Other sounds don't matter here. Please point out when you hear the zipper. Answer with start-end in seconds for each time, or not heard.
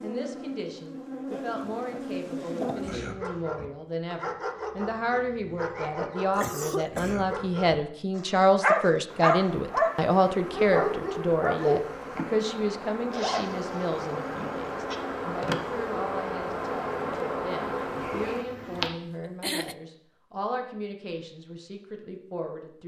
13.1-15.0.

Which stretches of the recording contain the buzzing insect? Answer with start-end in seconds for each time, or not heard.
0.0-3.0, 9.1-18.9.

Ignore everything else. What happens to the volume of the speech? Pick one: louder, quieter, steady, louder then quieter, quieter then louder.
louder then quieter.